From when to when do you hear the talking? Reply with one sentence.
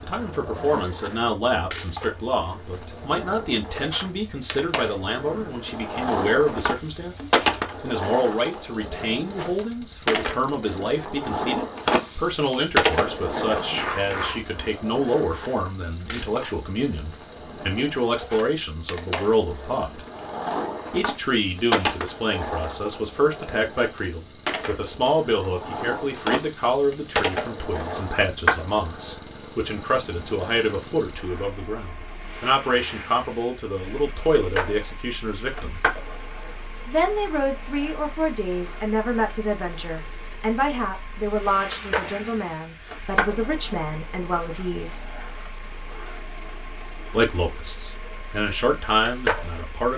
The talking can be heard from 0.0 to 20.1 s, from 20.9 to 35.8 s, from 36.9 to 45.0 s and from 47.1 to 49.9 s.